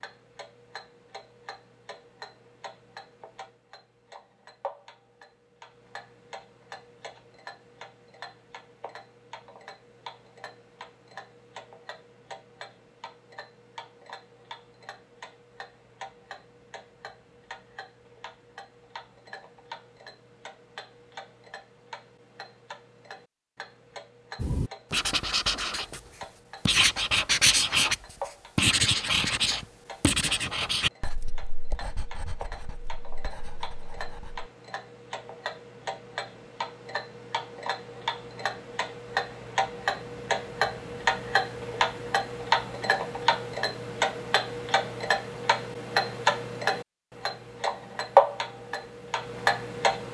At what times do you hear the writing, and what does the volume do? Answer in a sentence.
You can hear the writing briefly from 24.4 to 26.0 s; and from 26.6 to 34.5 s, getting quieter.